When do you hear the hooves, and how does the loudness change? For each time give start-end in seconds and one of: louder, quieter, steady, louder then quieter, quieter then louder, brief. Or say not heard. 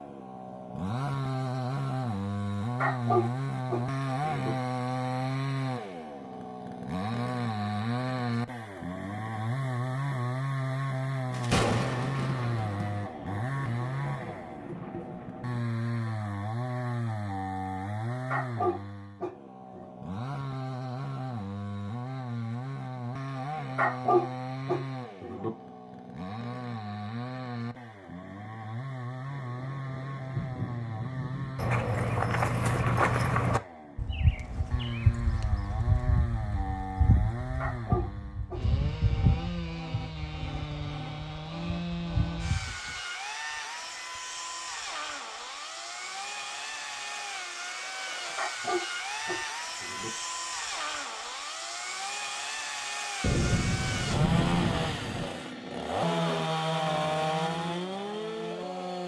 31.6-43.0 quieter.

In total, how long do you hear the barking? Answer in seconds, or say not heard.
8 s.